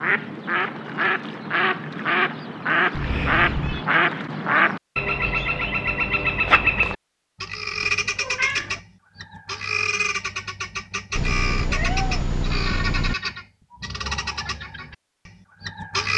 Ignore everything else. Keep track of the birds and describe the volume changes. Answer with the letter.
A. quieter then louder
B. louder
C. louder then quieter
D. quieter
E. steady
D.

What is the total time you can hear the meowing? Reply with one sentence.
You can hear the meowing for 4 seconds altogether.